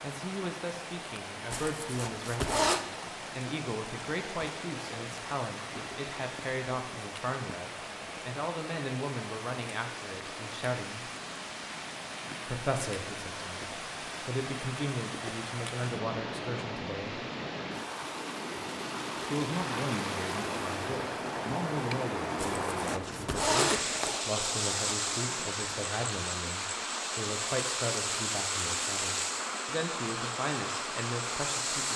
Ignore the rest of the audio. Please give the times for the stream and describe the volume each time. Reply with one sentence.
You can hear the stream from 0.0 to 31.9 s, getting louder.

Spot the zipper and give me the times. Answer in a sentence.
The zipper can be heard from 1.5 to 2.9 s and from 22.4 to 24.2 s.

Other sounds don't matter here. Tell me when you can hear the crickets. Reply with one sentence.
You can't hear the crickets here.